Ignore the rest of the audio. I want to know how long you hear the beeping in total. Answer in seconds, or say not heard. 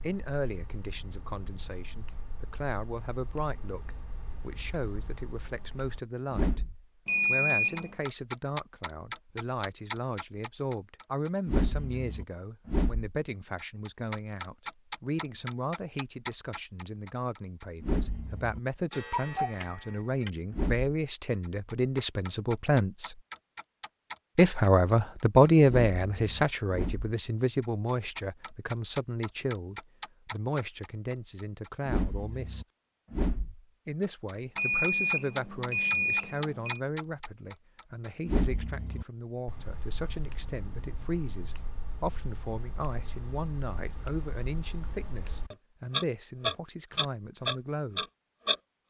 3 s.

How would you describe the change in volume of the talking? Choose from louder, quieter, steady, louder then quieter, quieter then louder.
louder then quieter.